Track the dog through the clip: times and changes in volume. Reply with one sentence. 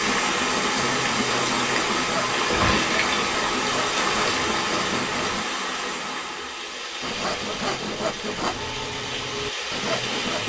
The dog can't be heard in this clip.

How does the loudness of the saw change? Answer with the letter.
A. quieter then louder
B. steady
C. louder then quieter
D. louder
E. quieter
B.